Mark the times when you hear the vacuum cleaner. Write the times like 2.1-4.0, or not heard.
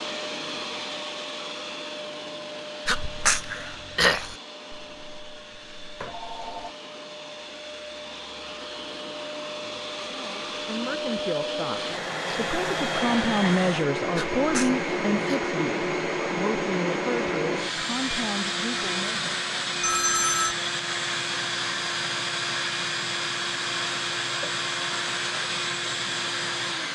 0.0-26.8.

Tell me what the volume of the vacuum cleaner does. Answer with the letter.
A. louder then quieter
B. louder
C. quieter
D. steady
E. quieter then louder
B.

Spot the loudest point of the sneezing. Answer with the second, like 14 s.
4 s.